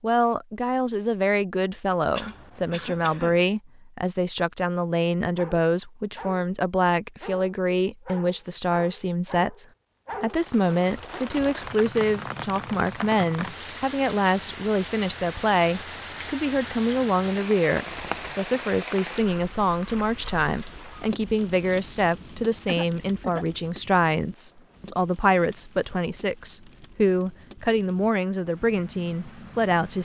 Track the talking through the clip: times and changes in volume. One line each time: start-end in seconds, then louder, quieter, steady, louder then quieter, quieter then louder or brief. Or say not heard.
0.0-29.9 steady.